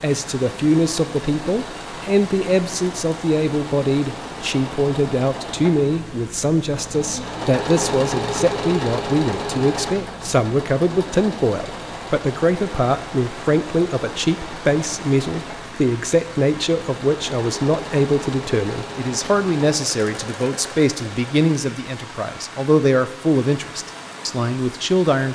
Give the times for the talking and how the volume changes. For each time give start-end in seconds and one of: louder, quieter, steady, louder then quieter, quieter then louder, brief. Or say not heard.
0.0-25.3 steady.